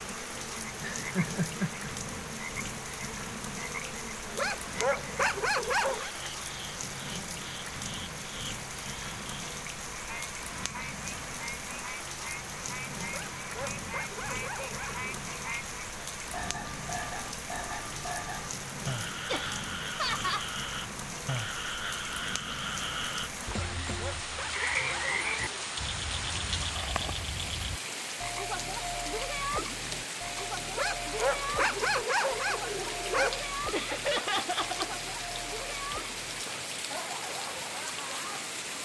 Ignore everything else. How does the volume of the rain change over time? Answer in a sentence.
The volume of the rain stays about the same.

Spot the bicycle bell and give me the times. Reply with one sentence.
You can't hear the bicycle bell here.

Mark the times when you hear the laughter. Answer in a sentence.
The laughter can be heard from 0.8 to 1.9 s, from 19.2 to 20.5 s and from 33.7 to 35.0 s.